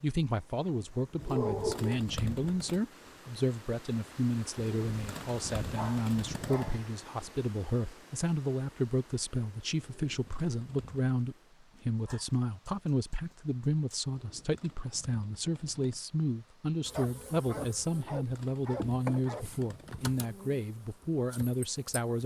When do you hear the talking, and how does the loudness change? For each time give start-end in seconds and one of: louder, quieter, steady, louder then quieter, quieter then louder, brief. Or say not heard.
0.0-22.2 steady.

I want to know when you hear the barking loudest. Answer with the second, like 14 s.
2 s.